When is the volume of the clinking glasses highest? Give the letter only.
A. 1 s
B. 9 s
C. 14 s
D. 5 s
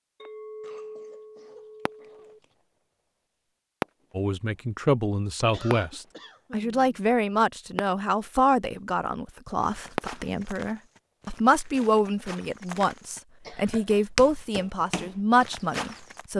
A.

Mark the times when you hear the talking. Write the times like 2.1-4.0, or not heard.
4.2-16.3.